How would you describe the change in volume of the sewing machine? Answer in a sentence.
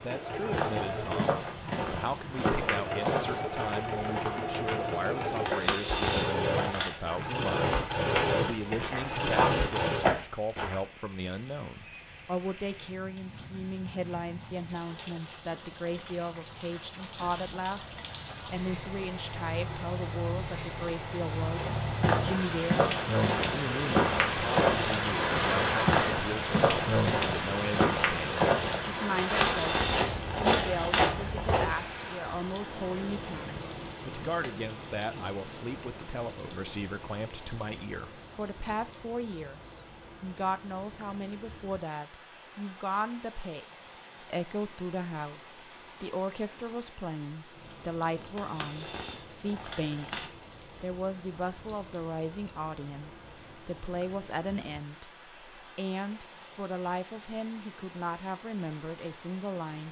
The volume of the sewing machine goes up.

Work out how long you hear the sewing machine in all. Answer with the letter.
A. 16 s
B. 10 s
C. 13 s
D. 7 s
B.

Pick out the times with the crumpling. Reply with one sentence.
The crumpling can be heard from 5.4 to 7.0 s, from 29.1 to 31.1 s and from 48.4 to 50.3 s.